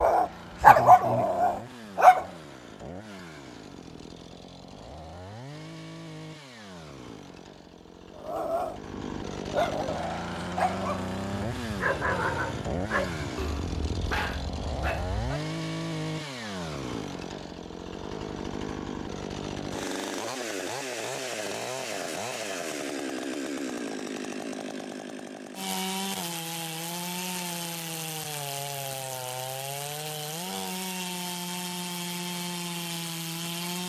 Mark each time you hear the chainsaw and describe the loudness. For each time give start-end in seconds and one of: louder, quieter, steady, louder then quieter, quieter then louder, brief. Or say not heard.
0.0-33.8 louder.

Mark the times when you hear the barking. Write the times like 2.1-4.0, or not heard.
0.0-2.3, 8.2-15.4.